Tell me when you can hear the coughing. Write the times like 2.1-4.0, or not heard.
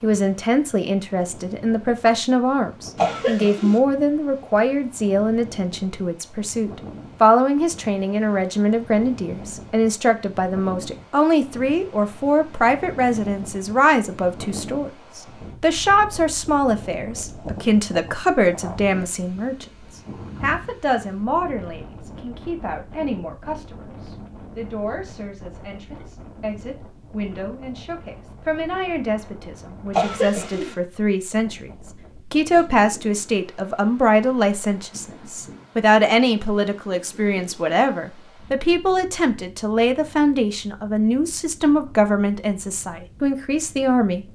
3.0-3.8, 29.9-30.8.